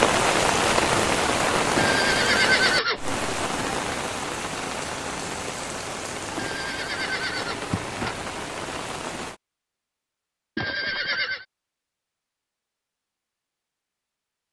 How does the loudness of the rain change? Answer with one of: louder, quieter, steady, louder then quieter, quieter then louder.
quieter.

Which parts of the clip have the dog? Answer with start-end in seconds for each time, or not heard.
not heard.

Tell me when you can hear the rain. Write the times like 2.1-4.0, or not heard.
0.0-9.4.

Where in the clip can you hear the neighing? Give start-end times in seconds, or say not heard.
1.8-3.0, 6.3-8.2, 10.6-11.4.